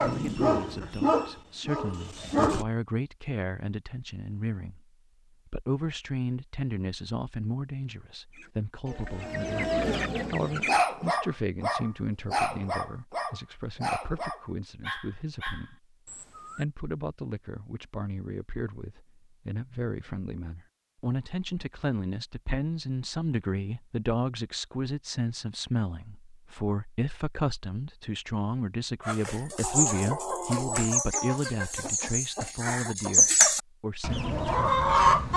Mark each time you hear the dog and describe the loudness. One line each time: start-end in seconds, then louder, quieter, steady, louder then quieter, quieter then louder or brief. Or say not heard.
0.0-2.6 brief
10.7-16.6 quieter.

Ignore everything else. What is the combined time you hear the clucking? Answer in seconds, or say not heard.
9 s.